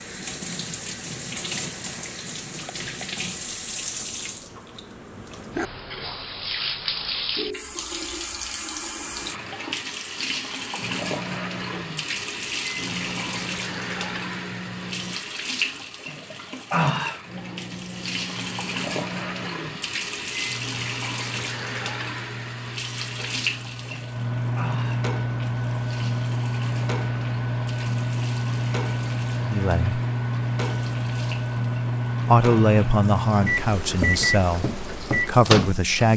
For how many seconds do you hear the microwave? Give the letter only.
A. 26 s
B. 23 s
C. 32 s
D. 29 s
B.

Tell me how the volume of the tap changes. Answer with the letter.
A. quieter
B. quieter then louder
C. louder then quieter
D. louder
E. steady
A.